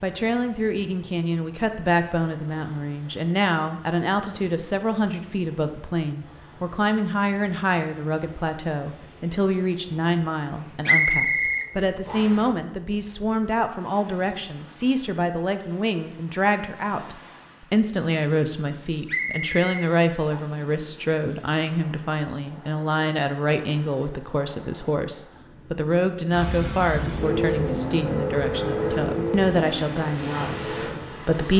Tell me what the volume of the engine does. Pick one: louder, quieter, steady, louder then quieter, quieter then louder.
quieter.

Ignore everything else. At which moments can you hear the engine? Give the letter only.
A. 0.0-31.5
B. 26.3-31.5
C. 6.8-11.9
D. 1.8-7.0
B.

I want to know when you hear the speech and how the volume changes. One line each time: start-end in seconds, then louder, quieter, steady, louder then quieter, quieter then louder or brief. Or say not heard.
0.0-31.5 steady.